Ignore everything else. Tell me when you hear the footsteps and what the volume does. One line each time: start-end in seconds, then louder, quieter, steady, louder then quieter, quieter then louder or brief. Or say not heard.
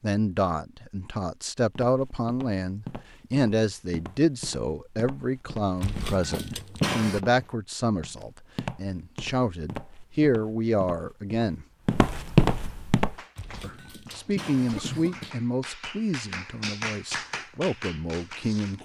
1.8-13.2 louder.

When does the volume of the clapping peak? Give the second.
17 s.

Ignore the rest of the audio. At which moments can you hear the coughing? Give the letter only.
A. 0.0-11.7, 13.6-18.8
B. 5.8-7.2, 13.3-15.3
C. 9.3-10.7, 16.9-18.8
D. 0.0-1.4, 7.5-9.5
B.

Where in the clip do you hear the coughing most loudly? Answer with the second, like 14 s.
7 s.